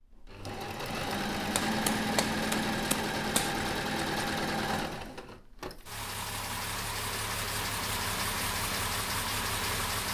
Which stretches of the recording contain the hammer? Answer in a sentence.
The hammer can be heard from 1.6 to 3.5 s.